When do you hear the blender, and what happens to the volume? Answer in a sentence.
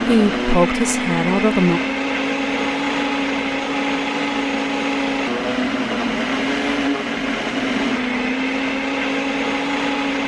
The blender can be heard from 0.0 to 10.2 s, at a steady volume.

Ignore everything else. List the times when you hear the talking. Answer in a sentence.
You can hear the talking from 0.1 to 1.8 s.